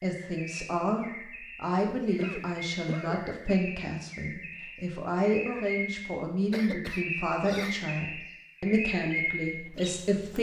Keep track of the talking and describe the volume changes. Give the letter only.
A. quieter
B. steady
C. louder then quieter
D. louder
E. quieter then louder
B.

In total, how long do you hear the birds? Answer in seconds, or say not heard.
10 s.